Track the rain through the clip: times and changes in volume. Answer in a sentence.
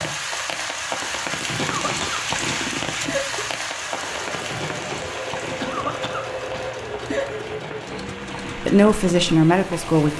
The rain can be heard from 0.0 to 10.1 s, getting quieter.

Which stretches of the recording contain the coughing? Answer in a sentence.
The coughing can be heard from 1.6 to 3.5 s and from 5.6 to 7.5 s.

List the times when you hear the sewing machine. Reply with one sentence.
You can hear the sewing machine from 3.7 to 10.0 s.